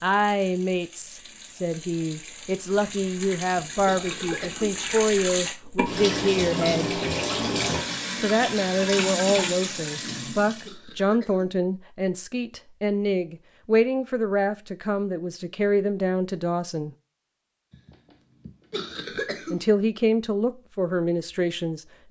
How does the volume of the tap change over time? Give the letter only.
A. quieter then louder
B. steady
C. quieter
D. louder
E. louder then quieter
D.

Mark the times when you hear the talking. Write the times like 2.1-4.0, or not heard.
0.0-7.0, 8.2-16.9, 19.5-22.0.